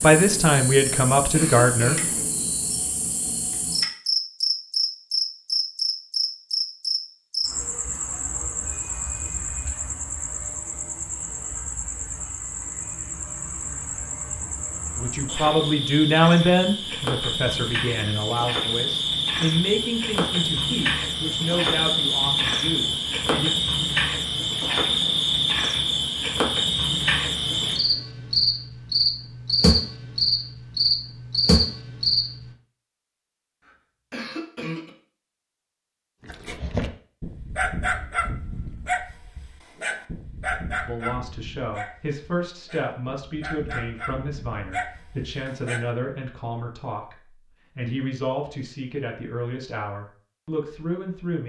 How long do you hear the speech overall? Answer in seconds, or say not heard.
21 s.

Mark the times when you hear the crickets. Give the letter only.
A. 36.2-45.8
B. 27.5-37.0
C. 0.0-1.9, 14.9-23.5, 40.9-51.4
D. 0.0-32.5
D.